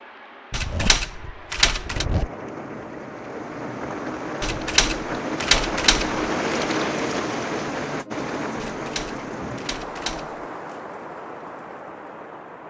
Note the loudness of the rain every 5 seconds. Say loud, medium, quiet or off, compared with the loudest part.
medium, loud, medium.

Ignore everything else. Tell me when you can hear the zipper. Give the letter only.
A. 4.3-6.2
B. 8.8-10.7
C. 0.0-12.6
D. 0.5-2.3
D.